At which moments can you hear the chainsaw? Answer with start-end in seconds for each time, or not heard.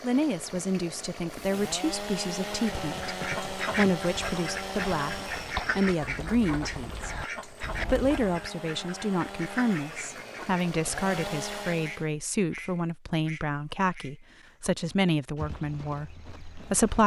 0.0-12.1.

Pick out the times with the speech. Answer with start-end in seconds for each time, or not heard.
0.0-17.0.